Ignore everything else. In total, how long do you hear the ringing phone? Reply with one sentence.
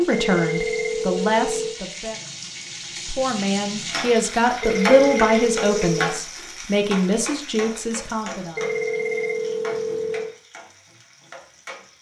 You can hear the ringing phone for 5 seconds altogether.